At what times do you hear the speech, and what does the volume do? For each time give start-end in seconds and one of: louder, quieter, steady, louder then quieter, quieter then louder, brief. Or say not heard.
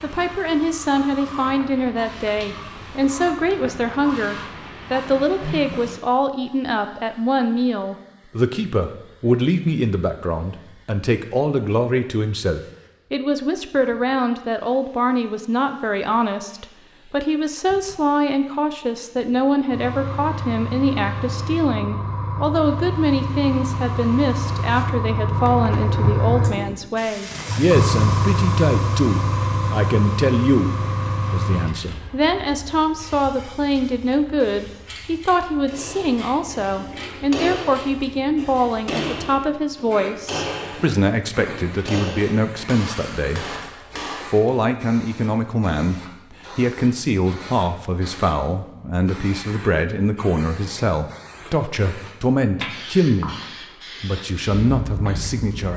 0.0-53.4 steady
54.0-55.7 brief.